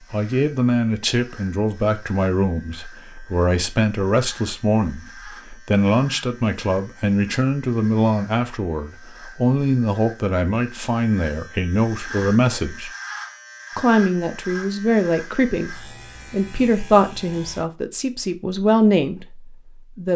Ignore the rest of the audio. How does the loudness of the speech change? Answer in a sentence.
The volume of the speech stays about the same.